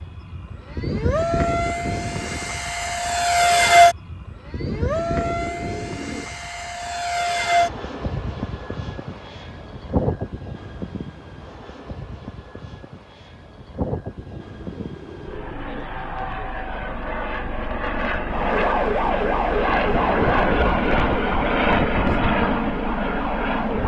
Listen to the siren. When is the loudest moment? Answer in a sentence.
The loudest moment of the siren is at 19 seconds.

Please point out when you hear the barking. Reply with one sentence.
The barking can't be heard in this clip.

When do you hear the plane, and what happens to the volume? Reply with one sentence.
You can hear the plane from 0.0 to 23.8 s, getting quieter then louder.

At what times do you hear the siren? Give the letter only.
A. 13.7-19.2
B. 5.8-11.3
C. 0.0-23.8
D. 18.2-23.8
D.